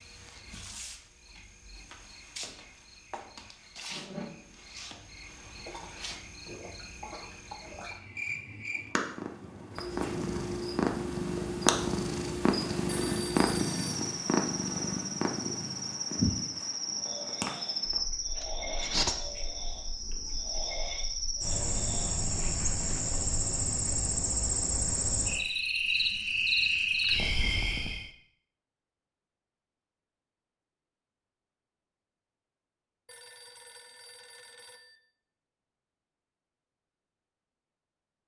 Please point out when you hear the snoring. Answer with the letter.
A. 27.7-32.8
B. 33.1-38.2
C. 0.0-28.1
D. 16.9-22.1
D.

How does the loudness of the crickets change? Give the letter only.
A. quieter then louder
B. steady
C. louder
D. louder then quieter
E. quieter
C.